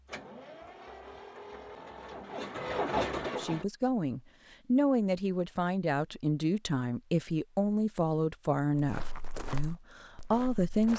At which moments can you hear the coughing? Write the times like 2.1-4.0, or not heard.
not heard.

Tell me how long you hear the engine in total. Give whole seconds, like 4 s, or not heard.
4 s.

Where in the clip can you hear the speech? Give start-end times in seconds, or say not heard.
3.3-10.9.